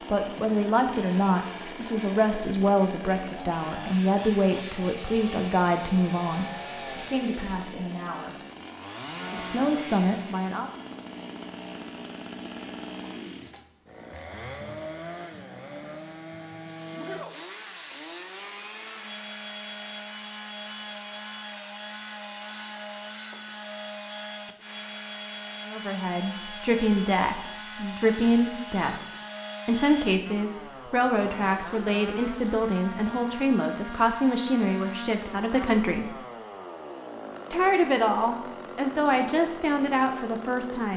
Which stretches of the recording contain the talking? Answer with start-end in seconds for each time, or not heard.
0.1-8.3, 9.3-10.7, 25.6-28.9, 29.6-36.1, 37.5-40.9.